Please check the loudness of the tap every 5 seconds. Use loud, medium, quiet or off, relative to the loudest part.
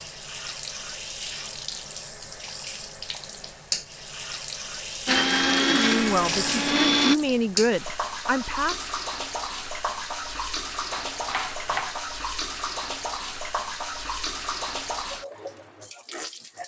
loud, loud, loud, medium.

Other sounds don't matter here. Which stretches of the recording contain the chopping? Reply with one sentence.
You can hear the chopping from 10.9 to 12.0 s.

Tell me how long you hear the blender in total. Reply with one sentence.
You can hear the blender for 2 seconds altogether.